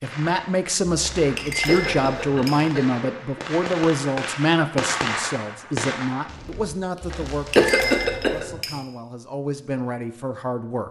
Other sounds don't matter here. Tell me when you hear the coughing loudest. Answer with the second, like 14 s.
8 s.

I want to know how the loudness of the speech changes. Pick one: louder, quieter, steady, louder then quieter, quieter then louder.
quieter.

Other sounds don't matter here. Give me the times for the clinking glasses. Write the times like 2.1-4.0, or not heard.
0.9-2.6, 7.0-8.8.